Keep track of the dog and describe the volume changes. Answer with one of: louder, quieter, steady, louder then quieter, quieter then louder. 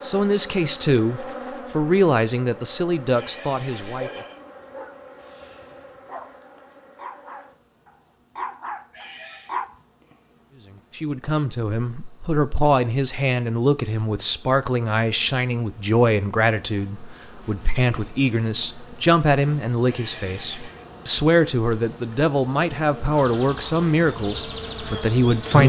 louder.